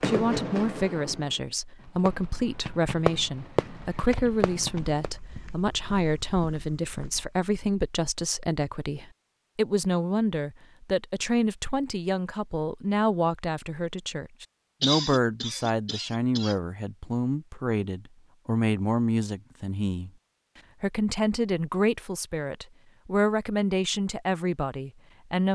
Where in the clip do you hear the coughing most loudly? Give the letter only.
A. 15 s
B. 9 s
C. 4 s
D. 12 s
A.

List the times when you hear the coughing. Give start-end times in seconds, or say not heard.
14.8-16.6.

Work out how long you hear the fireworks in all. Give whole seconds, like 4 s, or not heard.
5 s.